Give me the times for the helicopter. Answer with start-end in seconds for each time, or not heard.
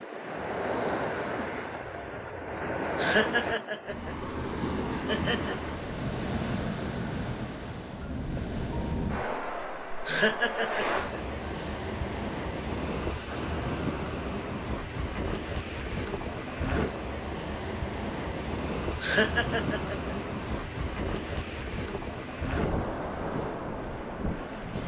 not heard.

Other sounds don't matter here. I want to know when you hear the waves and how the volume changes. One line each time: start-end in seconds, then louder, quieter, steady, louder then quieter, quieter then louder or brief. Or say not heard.
0.0-24.8 steady.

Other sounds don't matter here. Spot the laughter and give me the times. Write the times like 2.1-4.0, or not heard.
3.0-4.2, 5.0-5.5, 10.1-11.2, 19.0-20.1.